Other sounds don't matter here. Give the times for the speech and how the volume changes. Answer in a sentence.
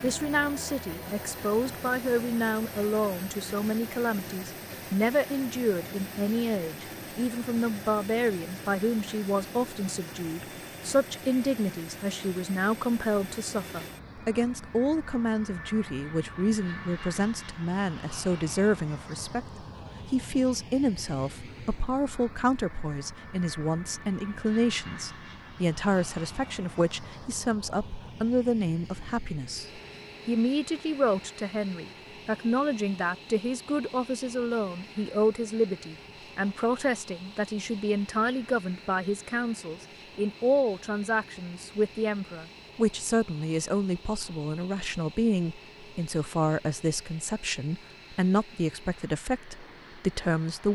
You can hear the speech from 0.0 to 50.6 s, at a steady volume.